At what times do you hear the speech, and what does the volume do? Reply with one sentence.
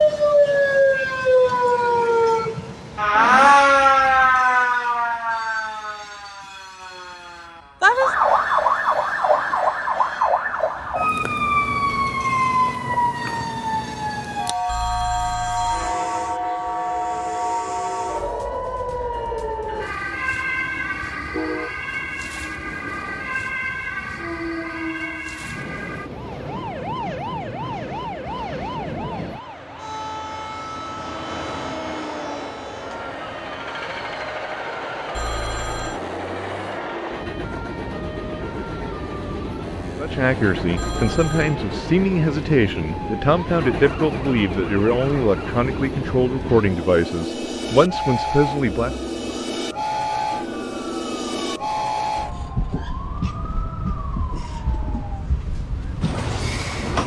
The speech can be heard from 40.0 to 49.0 s, at a steady volume.